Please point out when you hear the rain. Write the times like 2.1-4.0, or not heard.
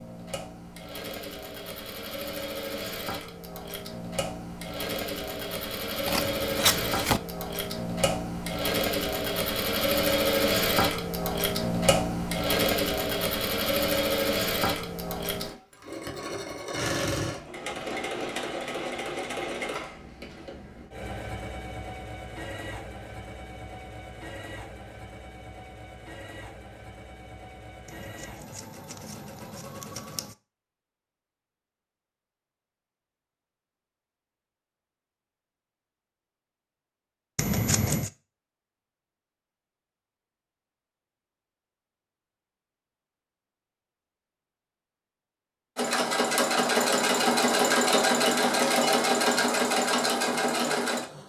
not heard.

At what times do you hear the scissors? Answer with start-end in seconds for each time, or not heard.
6.0-7.2, 27.9-30.4, 37.4-38.1.